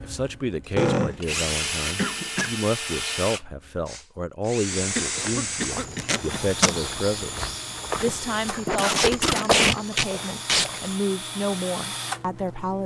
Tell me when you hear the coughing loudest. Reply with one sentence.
The loudest moment of the coughing is at 1 second.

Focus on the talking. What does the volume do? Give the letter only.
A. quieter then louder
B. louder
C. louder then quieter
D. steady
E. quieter
D.